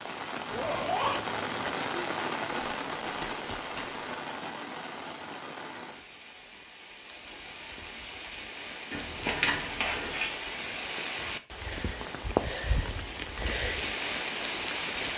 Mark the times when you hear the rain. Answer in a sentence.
The rain can be heard from 0.0 to 15.1 s.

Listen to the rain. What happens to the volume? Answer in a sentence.
The loudness of the rain goes down, then up.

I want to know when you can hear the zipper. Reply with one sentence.
You can hear the zipper from 0.5 to 1.7 s.